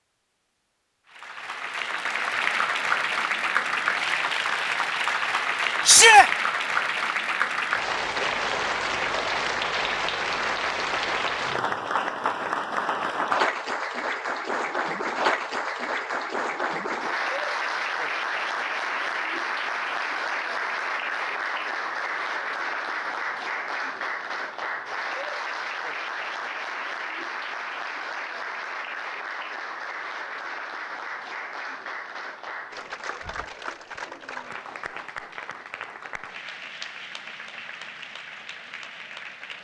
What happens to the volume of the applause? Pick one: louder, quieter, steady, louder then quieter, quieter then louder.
quieter.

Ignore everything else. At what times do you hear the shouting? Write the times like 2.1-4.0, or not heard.
5.8-6.3.